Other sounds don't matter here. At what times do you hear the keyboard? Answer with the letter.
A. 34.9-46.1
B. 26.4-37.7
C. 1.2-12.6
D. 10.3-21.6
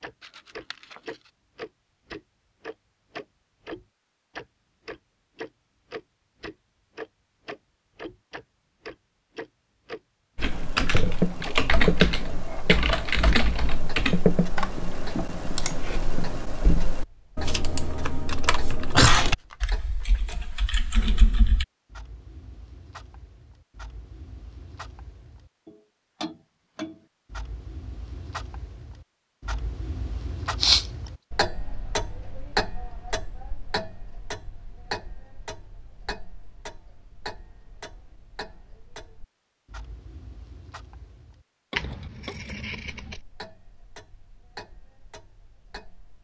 D.